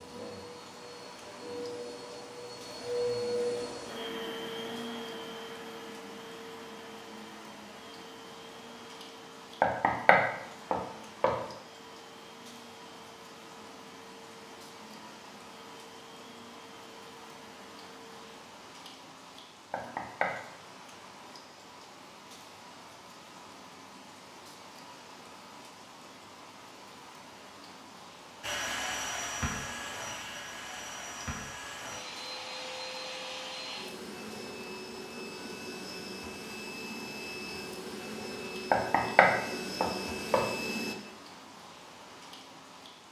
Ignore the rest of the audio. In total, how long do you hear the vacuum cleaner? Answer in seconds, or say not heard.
31 s.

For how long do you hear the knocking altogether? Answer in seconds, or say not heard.
4 s.